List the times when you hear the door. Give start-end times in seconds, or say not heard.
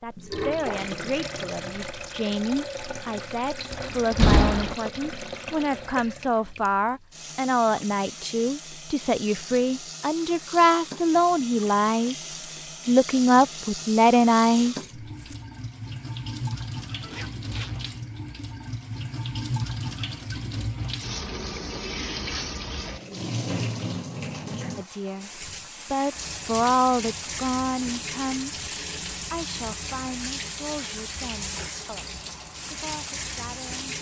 3.7-4.8.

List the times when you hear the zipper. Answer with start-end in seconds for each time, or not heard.
17.0-17.9.